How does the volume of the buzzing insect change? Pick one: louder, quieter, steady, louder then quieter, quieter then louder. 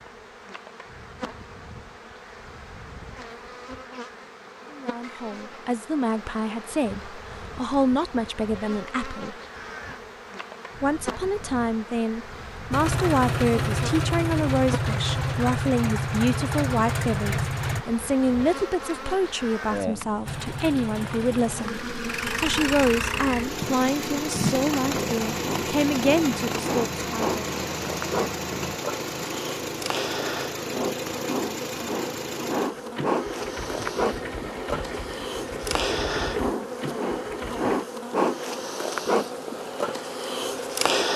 louder.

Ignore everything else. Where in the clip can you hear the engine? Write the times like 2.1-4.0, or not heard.
12.7-17.9, 20.2-37.8.